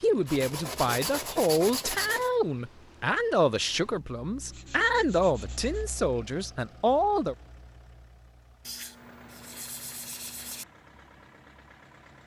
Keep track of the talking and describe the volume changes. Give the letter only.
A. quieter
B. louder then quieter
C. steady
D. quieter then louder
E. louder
C.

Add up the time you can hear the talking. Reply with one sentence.
You can hear the talking for 7 seconds altogether.